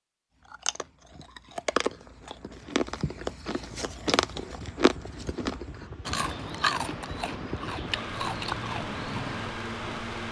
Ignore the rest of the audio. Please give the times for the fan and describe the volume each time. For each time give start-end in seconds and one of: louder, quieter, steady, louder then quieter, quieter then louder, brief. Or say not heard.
3.5-10.2 louder.